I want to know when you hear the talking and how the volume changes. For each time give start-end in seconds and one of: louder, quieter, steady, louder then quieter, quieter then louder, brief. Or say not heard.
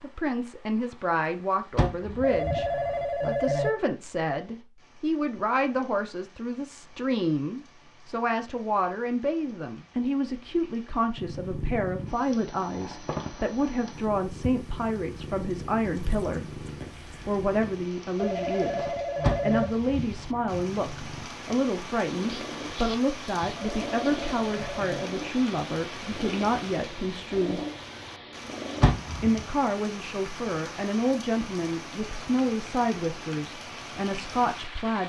0.0-16.6 steady
17.2-27.6 steady
29.2-35.0 steady.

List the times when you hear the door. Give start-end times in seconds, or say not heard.
1.8-3.0, 19.2-20.6, 28.8-29.4.